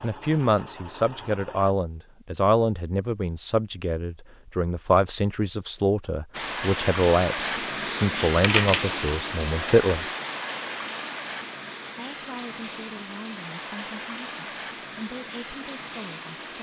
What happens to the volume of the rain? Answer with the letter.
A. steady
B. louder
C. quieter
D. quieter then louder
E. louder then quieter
C.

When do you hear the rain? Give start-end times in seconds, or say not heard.
6.3-16.5.